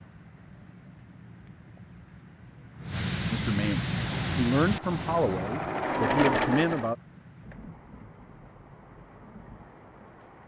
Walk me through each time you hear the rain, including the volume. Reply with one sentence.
You can hear the rain from 0.0 to 10.4 s, getting louder then quieter.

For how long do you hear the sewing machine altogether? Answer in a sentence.
The sewing machine can be heard for 3 seconds in total.